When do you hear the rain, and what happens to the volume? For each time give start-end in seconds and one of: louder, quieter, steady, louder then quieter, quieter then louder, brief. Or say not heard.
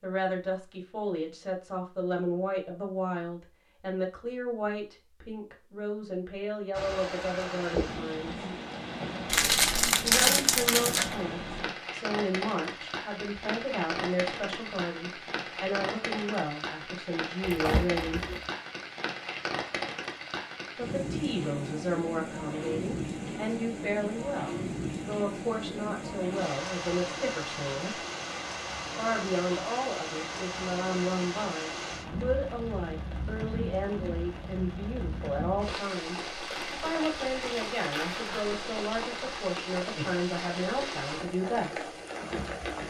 6.7-42.8 steady.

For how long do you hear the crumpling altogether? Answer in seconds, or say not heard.
5 s.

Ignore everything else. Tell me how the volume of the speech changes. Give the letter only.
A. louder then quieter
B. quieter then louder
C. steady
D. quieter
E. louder
C.